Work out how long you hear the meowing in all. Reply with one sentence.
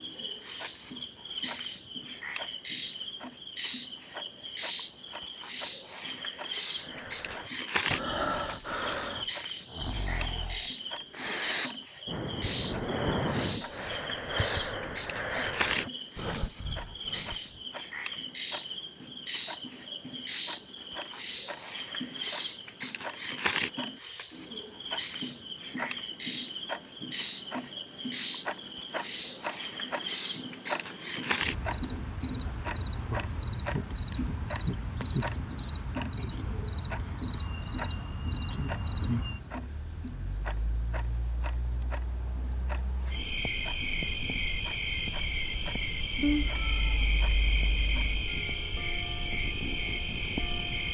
You can hear the meowing for 2 seconds altogether.